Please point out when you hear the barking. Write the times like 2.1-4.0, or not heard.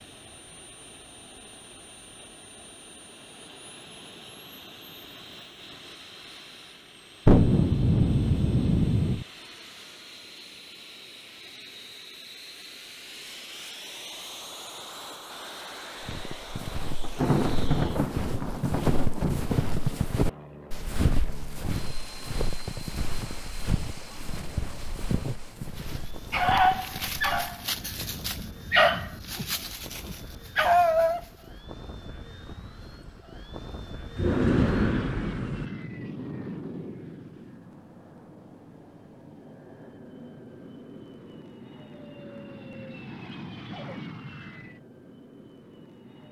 25.9-31.2.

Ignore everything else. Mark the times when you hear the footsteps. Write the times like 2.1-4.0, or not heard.
16.0-27.4.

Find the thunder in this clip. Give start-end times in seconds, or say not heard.
7.2-9.2, 17.0-20.1, 34.1-35.6.